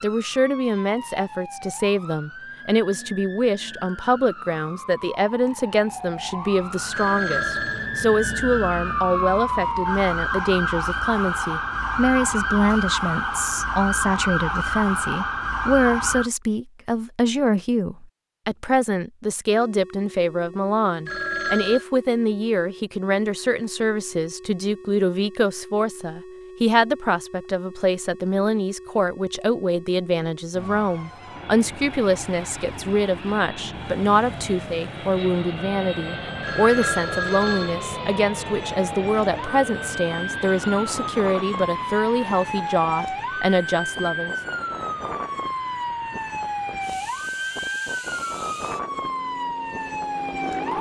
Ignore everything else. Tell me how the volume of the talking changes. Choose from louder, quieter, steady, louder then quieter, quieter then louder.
steady.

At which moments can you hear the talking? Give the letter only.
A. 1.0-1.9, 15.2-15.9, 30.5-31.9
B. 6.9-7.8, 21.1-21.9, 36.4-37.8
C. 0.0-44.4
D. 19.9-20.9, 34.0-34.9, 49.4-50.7
C.